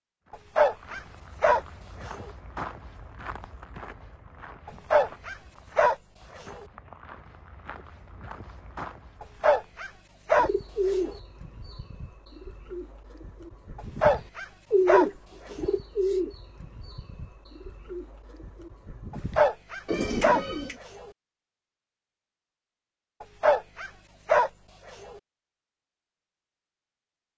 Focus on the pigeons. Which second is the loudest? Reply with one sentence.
The volume of the pigeons peaks at 15 seconds.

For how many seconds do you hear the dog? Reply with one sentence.
The dog can be heard for 12 seconds in total.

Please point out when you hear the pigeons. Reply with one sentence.
The pigeons can be heard from 10.3 to 20.8 s.